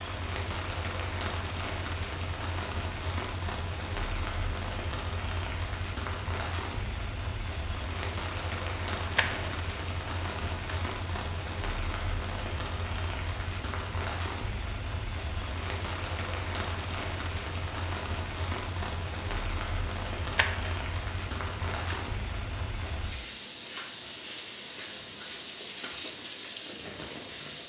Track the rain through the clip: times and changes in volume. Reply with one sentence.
The rain can be heard from 0.0 to 27.6 s, at a steady volume.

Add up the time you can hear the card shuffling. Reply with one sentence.
The card shuffling can be heard for 3 seconds in total.